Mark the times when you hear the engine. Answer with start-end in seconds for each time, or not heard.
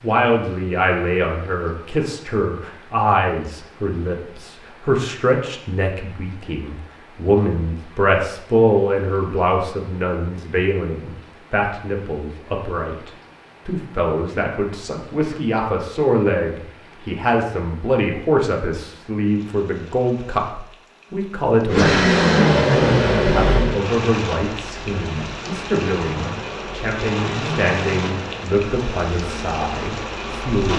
21.6-30.6.